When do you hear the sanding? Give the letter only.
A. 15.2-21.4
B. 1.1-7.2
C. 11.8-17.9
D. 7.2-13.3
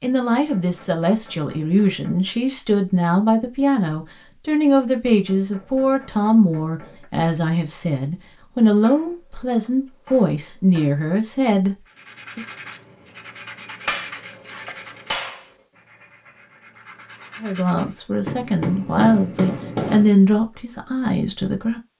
C.